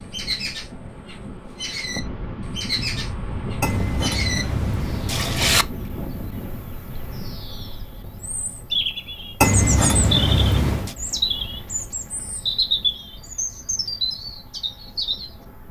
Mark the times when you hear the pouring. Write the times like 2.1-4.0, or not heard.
3.6-5.7, 9.4-10.9.